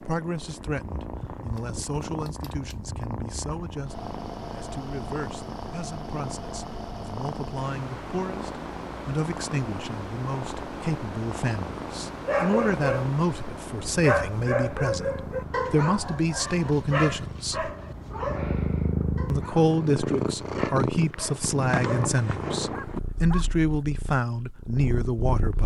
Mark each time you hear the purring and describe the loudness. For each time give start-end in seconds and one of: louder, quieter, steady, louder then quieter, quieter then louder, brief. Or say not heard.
0.0-25.6 louder.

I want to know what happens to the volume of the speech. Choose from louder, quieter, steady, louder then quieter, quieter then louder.
louder.